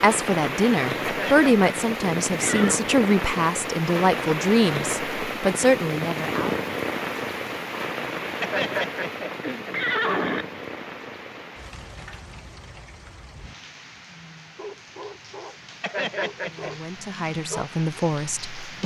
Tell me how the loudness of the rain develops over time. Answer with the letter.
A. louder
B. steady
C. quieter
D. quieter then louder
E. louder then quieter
C.